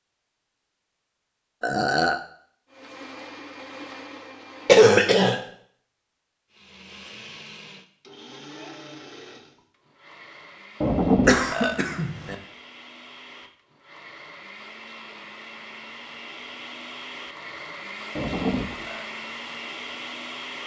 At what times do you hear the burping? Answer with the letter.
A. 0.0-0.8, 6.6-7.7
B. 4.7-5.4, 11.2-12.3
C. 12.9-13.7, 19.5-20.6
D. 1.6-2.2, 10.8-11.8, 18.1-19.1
D.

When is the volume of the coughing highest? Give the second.
5 s.